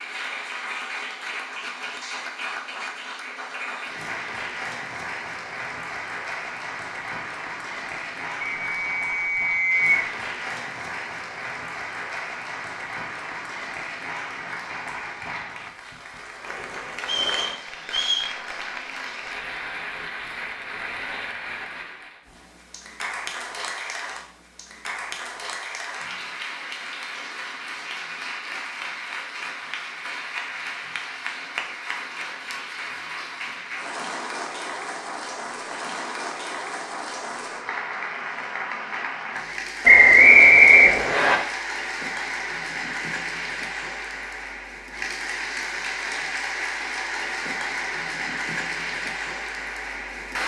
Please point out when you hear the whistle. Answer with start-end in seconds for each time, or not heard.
8.4-9.9, 17.0-18.2, 39.9-41.4.